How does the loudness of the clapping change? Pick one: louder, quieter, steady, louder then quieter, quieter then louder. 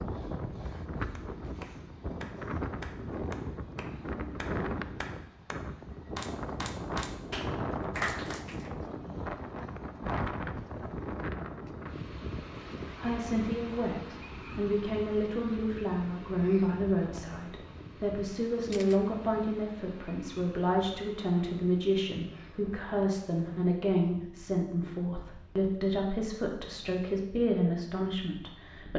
louder.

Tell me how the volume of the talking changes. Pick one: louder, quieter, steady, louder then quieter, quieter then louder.
steady.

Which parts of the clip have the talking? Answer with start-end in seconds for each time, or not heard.
13.0-28.9.